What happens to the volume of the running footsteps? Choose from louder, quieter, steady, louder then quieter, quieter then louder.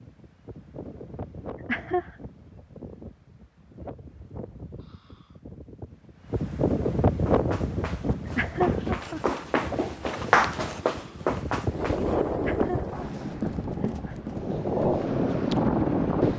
louder then quieter.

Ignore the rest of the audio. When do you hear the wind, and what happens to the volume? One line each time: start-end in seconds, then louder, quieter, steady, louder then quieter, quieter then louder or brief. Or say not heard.
0.0-16.3 louder.